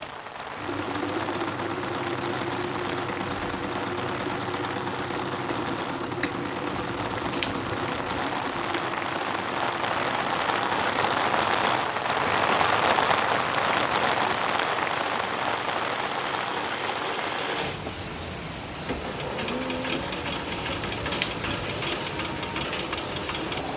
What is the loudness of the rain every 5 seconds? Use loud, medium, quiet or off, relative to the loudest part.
medium, medium, loud, medium, medium.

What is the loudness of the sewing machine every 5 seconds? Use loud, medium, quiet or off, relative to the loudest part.
loud, loud, medium, loud, loud.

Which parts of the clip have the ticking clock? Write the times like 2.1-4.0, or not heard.
not heard.